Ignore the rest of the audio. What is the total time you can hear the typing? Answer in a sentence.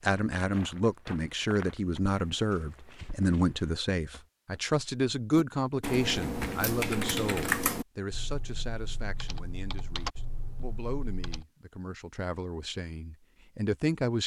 You can hear the typing for 6 seconds altogether.